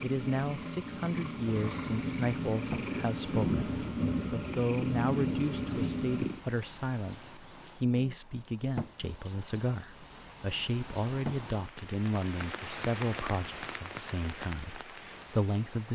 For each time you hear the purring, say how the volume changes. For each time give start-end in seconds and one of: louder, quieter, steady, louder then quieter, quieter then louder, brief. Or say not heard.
0.0-6.4 louder.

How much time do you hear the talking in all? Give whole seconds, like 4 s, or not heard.
16 s.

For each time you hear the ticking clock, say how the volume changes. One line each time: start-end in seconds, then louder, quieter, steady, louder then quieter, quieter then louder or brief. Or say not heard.
not heard.